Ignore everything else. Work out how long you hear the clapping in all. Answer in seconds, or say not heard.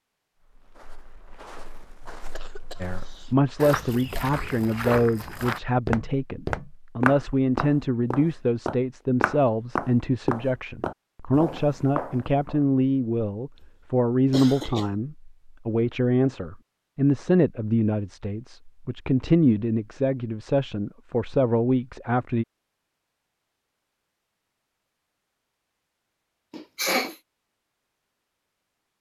not heard.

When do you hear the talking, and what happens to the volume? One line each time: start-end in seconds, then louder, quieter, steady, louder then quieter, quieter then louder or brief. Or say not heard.
2.8-22.4 steady.